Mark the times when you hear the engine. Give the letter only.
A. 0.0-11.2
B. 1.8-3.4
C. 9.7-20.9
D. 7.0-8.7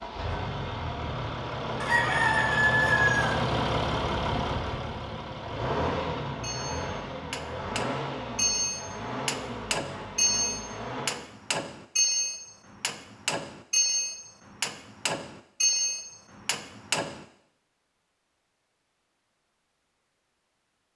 A.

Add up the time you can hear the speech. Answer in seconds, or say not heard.
not heard.